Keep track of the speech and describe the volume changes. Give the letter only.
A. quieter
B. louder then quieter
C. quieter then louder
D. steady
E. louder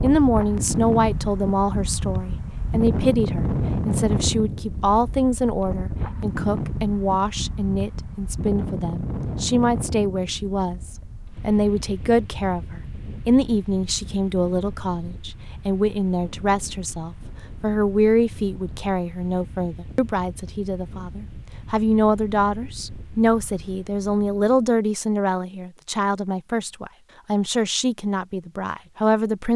D.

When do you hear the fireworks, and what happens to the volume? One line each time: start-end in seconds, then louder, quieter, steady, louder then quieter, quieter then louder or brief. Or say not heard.
not heard.